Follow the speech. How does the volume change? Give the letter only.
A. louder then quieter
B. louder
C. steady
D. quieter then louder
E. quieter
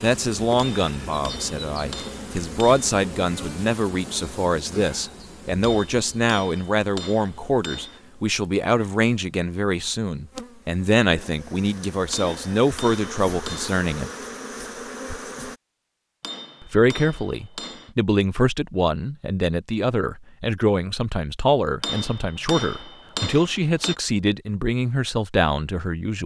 C.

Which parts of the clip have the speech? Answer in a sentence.
You can hear the speech from 0.0 to 14.1 s and from 16.6 to 26.2 s.